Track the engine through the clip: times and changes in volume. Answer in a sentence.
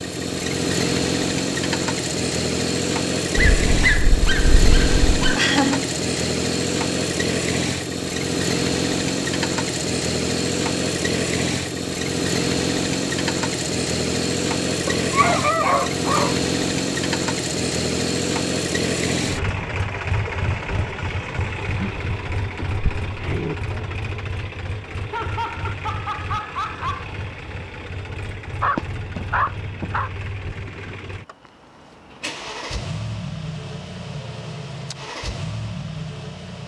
You can hear the engine from 0.0 to 36.6 s, getting quieter.